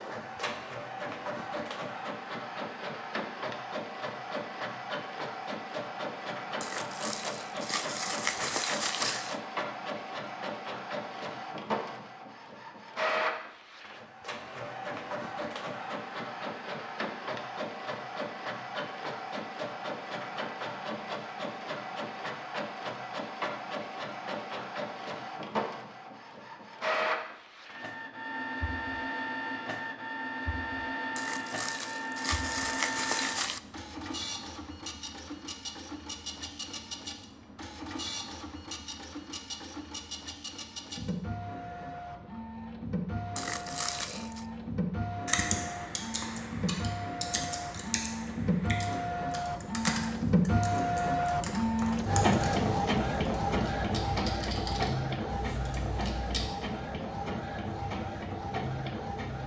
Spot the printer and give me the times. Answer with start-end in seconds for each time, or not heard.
0.0-59.4.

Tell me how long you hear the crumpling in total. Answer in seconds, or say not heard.
6 s.